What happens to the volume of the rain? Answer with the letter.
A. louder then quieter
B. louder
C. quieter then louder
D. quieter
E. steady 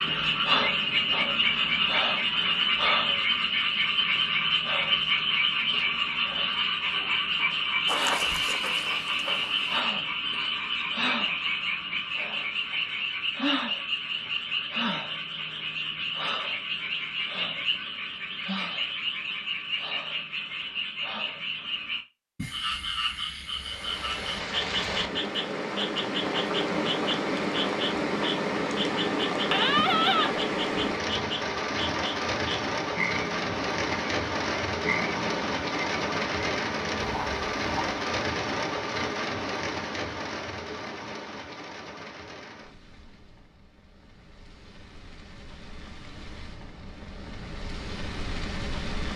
D.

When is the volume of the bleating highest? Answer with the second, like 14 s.
30 s.